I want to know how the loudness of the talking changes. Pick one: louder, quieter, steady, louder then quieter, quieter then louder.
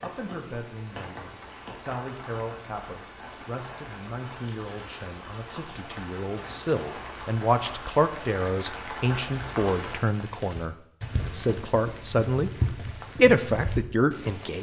louder.